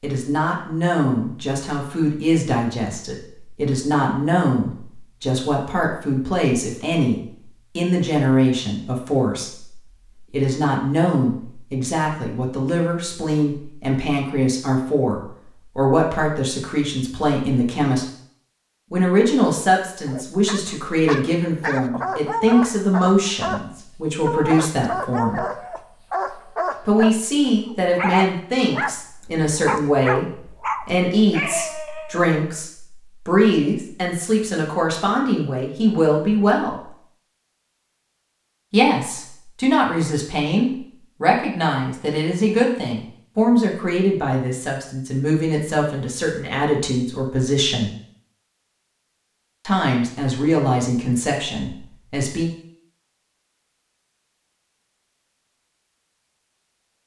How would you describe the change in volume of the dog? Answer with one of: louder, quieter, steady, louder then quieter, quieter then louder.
steady.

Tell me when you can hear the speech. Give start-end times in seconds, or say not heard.
0.0-18.1, 18.9-25.4, 26.9-36.9, 38.7-47.9, 49.6-52.5.